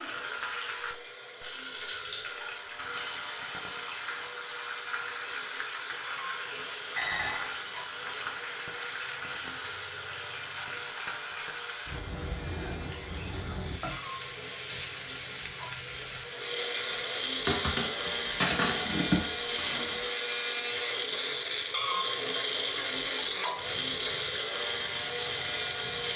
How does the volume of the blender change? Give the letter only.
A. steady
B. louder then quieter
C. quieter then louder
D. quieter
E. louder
E.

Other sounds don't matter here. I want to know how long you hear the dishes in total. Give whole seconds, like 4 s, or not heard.
3 s.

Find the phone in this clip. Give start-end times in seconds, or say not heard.
not heard.